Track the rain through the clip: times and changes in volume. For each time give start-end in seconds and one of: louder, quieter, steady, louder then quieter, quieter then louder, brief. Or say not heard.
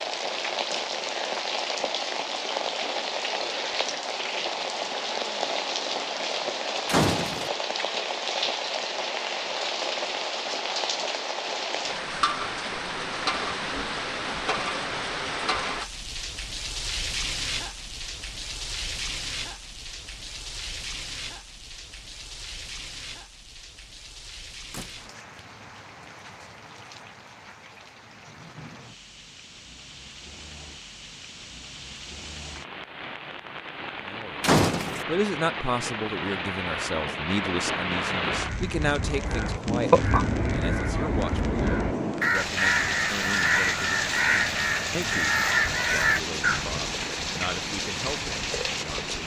0.0-49.2 quieter then louder.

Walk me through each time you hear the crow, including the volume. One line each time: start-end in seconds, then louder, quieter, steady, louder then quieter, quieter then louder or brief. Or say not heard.
38.3-46.7 quieter then louder.